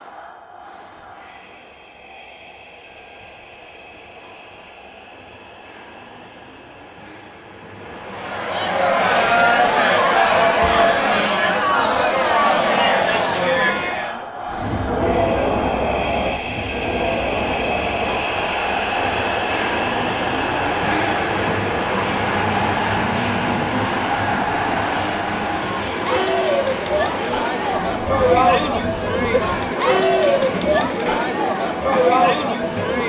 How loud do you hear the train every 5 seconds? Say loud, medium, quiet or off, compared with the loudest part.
quiet, quiet, medium, loud, loud, medium, medium.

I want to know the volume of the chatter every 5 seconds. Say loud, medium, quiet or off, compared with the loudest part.
off, loud, loud, medium, medium, loud, loud.